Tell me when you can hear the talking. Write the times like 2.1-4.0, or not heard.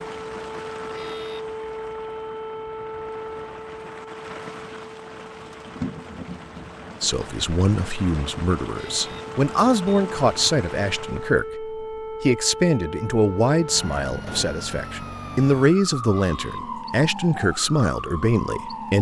7.0-18.9.